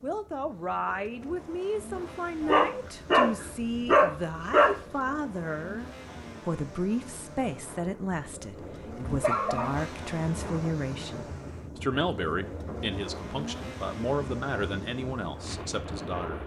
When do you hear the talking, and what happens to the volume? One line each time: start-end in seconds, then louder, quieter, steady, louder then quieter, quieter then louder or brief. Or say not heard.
0.0-16.4 steady.